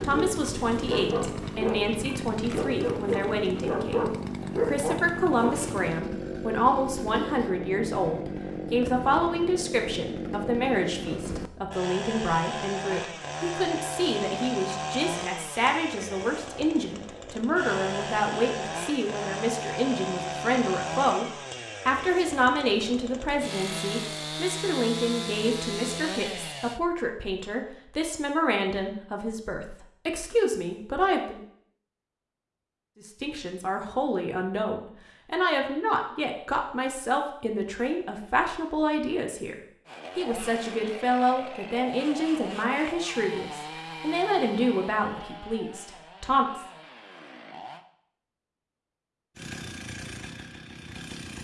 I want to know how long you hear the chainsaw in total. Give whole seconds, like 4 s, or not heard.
37 s.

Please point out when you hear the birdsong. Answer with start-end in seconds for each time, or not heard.
not heard.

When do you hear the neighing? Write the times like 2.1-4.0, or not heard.
not heard.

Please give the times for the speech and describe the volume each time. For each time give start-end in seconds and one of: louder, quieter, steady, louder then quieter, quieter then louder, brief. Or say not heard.
0.0-31.4 steady
33.0-46.6 steady.